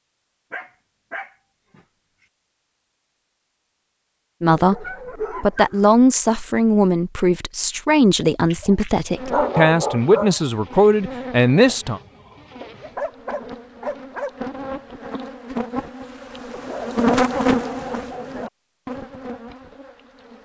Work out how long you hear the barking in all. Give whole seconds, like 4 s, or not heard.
8 s.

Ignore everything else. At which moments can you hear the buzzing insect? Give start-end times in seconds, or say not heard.
9.1-20.4.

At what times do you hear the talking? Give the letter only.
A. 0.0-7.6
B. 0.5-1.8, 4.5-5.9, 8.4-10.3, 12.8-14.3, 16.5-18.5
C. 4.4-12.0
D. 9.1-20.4
C.